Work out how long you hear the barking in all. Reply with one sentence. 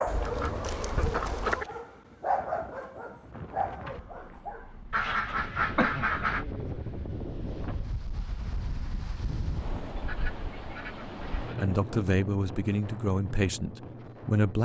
You can hear the barking for 5 seconds altogether.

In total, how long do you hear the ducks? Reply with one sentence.
You can hear the ducks for 5 seconds altogether.